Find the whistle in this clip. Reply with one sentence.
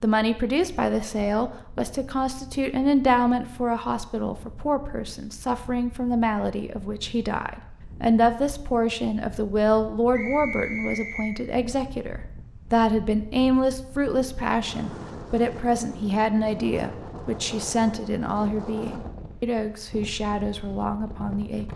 You can hear the whistle from 10.1 to 11.4 s.